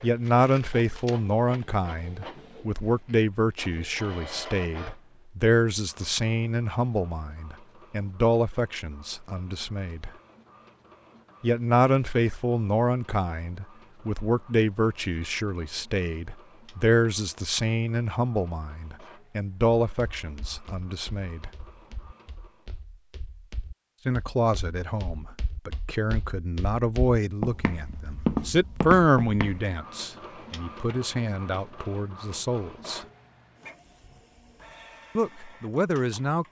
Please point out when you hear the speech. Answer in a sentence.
You can hear the speech from 0.0 to 10.1 s, from 11.4 to 21.5 s, from 24.1 to 33.0 s and from 35.1 to 36.4 s.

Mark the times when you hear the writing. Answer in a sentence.
The writing can't be heard in this clip.